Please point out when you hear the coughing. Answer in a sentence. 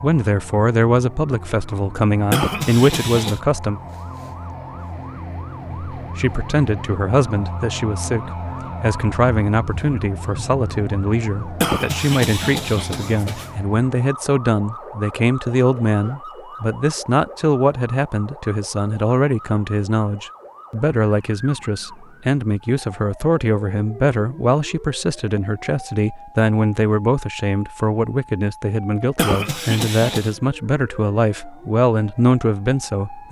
The coughing can be heard from 2.3 to 3.4 s, from 11.6 to 13.5 s and from 29.1 to 30.4 s.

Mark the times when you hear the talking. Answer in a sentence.
You can hear the talking from 0.0 to 3.8 s and from 6.0 to 33.2 s.